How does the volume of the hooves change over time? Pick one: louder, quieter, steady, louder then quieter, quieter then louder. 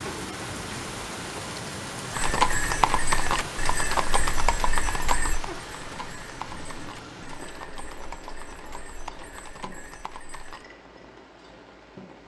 quieter.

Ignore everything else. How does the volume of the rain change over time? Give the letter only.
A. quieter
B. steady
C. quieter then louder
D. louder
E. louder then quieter
A.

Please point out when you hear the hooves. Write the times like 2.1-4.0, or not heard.
2.1-10.7.